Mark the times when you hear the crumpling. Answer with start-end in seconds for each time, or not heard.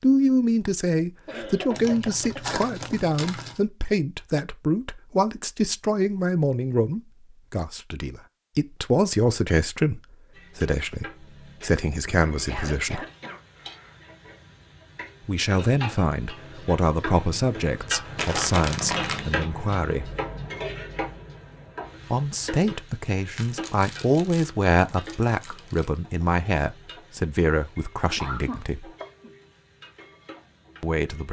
1.7-3.6, 18.1-19.2, 23.3-26.0.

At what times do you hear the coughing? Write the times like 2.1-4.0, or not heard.
1.2-2.6, 12.4-14.0, 28.2-29.3.